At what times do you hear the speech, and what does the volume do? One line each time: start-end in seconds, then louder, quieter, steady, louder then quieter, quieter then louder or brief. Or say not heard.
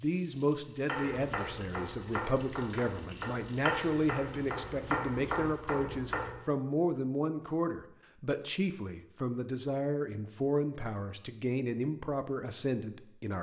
0.0-13.3 steady.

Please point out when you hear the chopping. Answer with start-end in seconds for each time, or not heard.
0.8-6.4.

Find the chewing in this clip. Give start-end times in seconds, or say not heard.
not heard.